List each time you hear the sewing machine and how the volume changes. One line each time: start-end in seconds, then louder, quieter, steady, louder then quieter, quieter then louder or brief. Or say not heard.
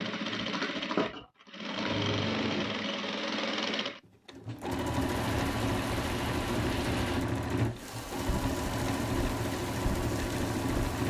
0.0-11.0 steady.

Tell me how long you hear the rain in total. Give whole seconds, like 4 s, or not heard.
6 s.